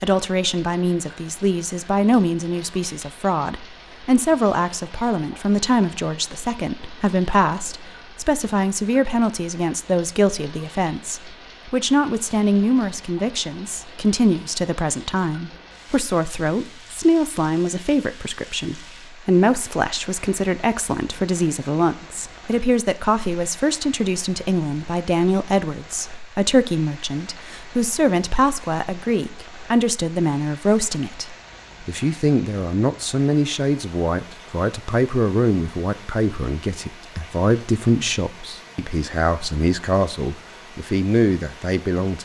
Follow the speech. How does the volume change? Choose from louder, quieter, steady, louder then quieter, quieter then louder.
steady.